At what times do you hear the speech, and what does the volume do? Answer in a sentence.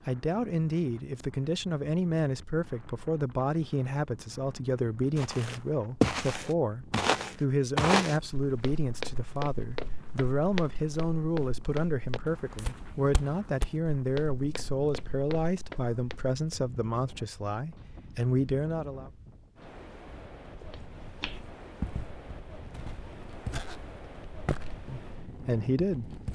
The speech can be heard from 0.1 to 19.1 s, at a steady volume; and briefly from 24.9 to 26.2 s.